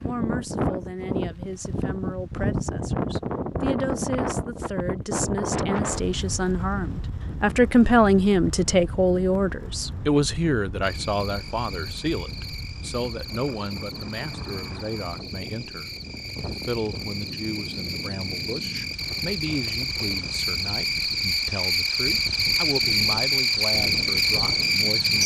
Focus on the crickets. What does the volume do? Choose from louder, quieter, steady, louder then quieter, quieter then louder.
louder.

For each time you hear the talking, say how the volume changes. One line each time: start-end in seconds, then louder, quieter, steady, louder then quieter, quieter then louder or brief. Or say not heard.
0.0-25.2 louder then quieter.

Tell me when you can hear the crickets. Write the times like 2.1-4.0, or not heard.
10.8-25.2.